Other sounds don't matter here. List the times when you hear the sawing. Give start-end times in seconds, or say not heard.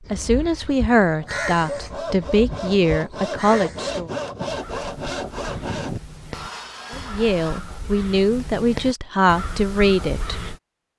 1.2-7.6.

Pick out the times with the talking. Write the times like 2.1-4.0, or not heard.
0.1-4.1, 6.9-10.6.